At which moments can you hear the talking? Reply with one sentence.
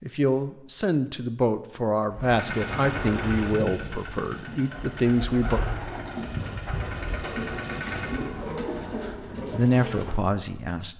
You can hear the talking from 0.0 to 5.6 s and from 9.0 to 10.9 s.